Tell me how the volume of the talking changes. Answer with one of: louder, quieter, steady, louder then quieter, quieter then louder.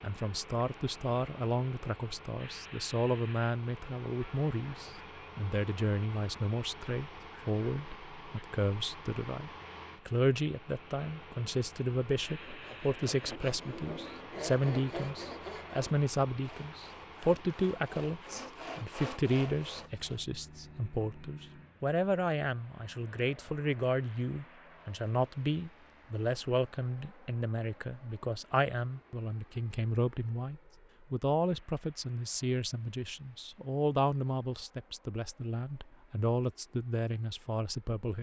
steady.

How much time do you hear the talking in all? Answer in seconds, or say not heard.
38 s.